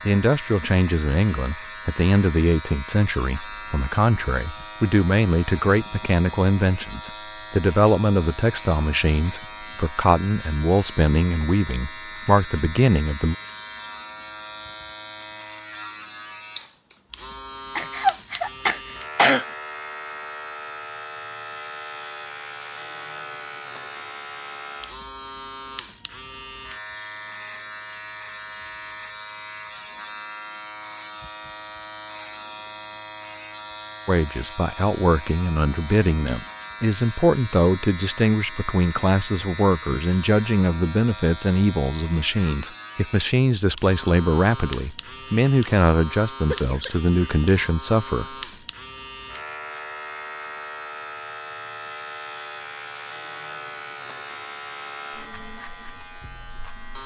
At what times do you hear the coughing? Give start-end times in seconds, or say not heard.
17.8-19.4, 46.5-47.6.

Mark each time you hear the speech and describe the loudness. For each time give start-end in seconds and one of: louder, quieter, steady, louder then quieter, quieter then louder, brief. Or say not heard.
0.1-13.3 steady
34.0-48.2 steady.